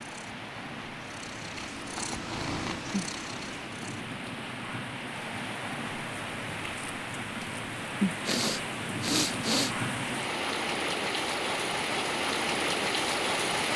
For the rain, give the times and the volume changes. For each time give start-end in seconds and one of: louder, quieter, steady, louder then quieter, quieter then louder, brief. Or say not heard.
0.0-13.7 louder.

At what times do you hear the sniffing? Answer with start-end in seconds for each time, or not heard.
8.2-9.8.